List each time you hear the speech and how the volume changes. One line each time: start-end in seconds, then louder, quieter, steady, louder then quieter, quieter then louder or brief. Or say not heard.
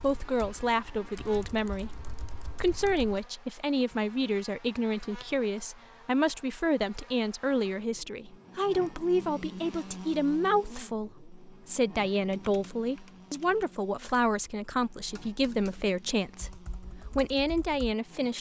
0.0-18.3 steady.